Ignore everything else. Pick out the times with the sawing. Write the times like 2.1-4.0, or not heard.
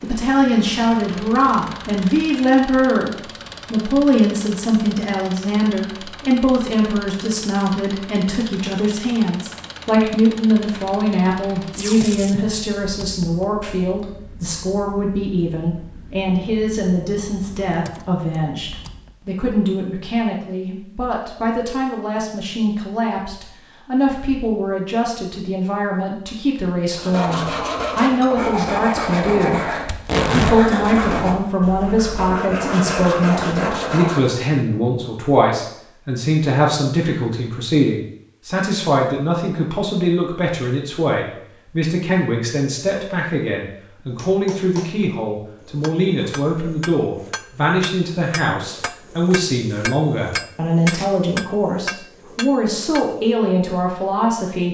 26.9-34.4.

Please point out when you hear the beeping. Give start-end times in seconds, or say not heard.
not heard.